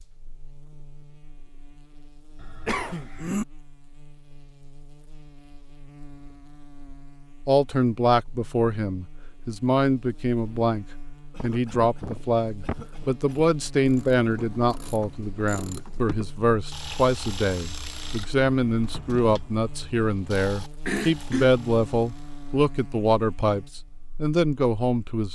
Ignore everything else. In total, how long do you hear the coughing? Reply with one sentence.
The coughing can be heard for 4 seconds in total.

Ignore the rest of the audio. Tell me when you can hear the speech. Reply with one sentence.
The speech can be heard from 7.5 to 25.2 s.